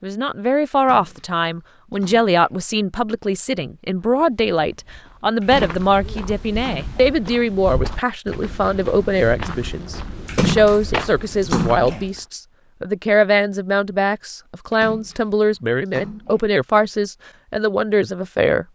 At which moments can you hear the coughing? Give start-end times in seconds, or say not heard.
not heard.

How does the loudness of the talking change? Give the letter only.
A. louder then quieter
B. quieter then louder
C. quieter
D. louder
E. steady
E.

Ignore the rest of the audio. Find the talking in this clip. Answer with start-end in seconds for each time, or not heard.
0.0-18.6.